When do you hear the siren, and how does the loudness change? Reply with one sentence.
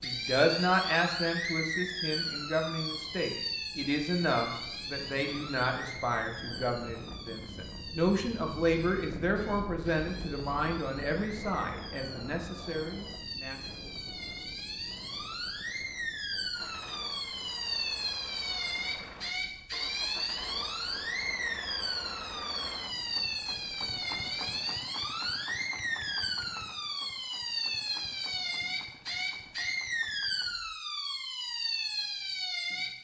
The siren can be heard from 0.0 to 32.9 s, getting quieter then louder.